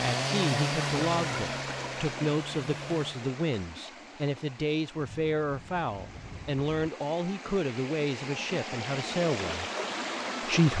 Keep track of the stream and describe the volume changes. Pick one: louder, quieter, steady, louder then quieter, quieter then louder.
quieter then louder.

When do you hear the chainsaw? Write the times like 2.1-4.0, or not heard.
0.0-3.1.